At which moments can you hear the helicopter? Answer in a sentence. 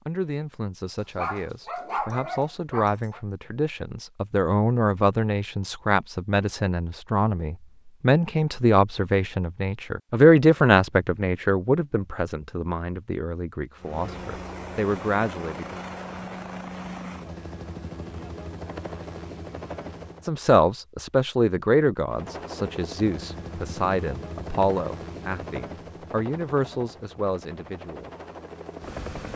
You can hear the helicopter from 13.8 to 20.3 s and from 22.1 to 29.3 s.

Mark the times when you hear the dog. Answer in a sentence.
The dog can be heard from 0.9 to 3.2 s.